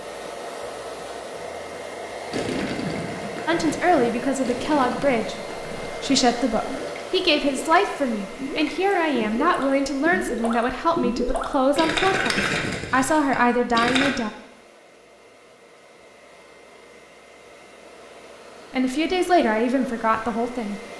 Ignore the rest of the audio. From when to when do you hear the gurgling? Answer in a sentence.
You can hear the gurgling from 2.3 to 14.2 s.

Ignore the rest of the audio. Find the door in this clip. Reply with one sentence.
You can't hear the door here.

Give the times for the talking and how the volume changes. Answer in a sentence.
You can hear the talking from 3.5 to 14.3 s, at a steady volume; and briefly from 18.7 to 20.8 s.